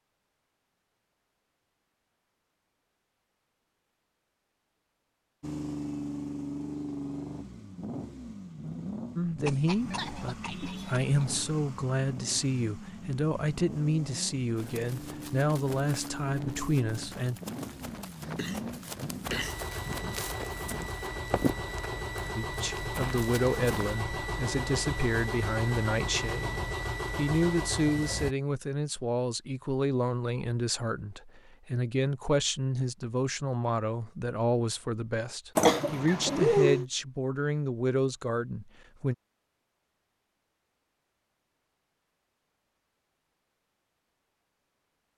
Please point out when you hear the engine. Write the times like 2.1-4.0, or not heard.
5.4-28.4.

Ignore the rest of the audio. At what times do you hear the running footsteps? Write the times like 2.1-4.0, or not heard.
14.6-23.9.